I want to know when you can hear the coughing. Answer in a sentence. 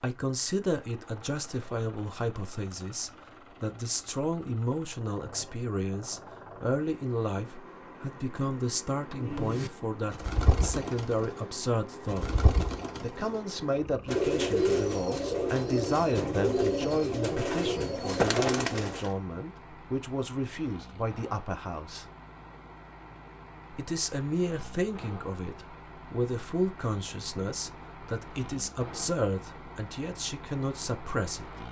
The coughing can't be heard in this clip.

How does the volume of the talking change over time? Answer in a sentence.
The volume of the talking stays about the same.